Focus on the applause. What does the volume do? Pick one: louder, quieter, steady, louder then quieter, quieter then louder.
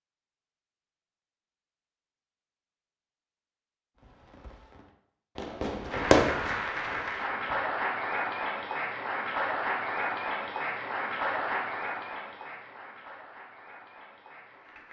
quieter.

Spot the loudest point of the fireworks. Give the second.
6 s.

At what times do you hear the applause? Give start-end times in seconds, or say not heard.
5.9-14.8.